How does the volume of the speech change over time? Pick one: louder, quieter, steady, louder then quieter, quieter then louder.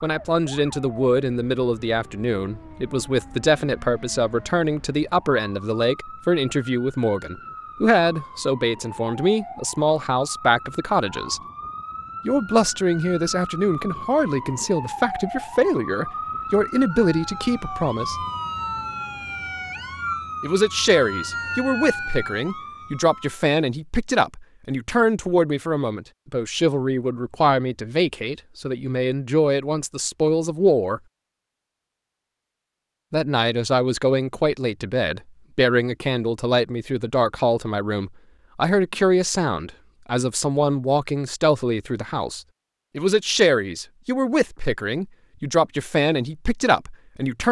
steady.